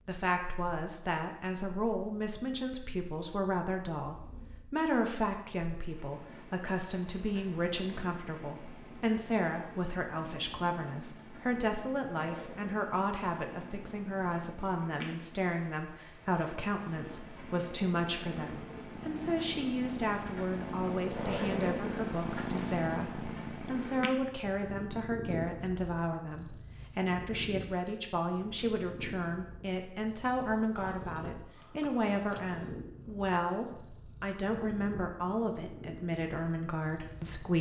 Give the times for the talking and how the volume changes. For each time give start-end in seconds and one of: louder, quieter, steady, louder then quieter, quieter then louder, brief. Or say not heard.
0.1-37.5 steady.